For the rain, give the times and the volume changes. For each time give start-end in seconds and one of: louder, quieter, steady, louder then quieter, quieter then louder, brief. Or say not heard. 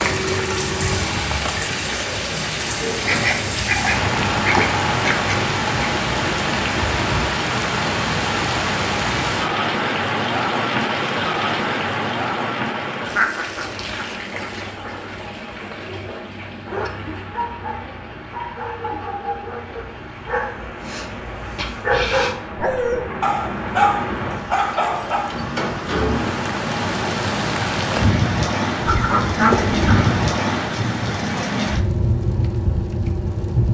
0.0-33.7 quieter then louder.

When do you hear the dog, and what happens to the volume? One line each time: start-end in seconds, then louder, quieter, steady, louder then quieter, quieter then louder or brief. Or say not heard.
15.7-25.4 louder.